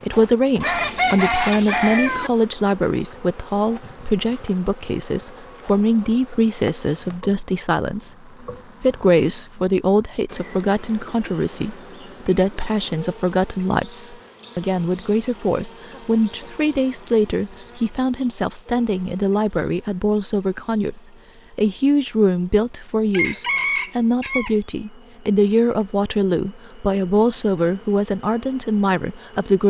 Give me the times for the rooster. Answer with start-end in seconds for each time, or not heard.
0.6-2.3, 23.1-24.6.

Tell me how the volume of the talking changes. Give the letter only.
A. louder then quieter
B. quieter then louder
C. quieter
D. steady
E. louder
D.